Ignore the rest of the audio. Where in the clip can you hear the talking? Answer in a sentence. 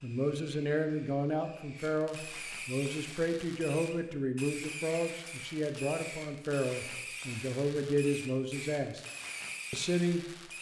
The talking can be heard from 0.0 to 9.1 s and from 9.7 to 10.5 s.